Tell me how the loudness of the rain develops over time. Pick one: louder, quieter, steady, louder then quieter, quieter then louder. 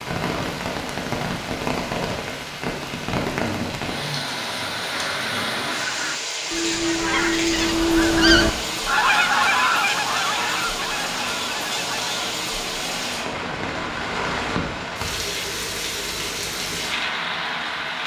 steady.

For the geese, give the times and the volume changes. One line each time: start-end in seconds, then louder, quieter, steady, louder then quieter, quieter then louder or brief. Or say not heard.
4.9-12.3 louder then quieter.